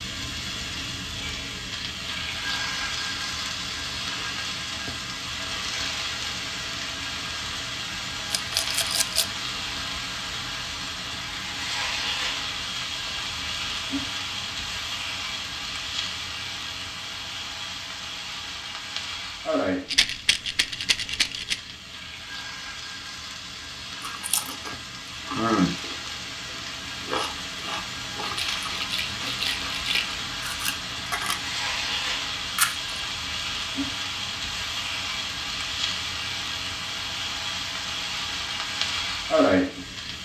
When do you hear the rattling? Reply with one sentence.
You can hear the rattling from 8.3 to 9.2 s, from 19.9 to 21.6 s and from 28.2 to 30.2 s.